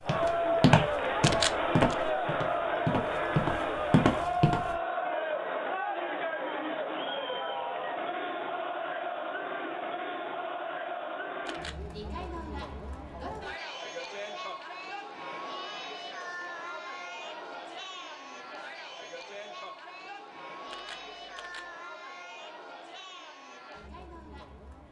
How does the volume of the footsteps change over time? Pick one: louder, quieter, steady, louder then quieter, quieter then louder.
quieter then louder.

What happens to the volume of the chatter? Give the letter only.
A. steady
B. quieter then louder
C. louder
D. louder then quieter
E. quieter
E.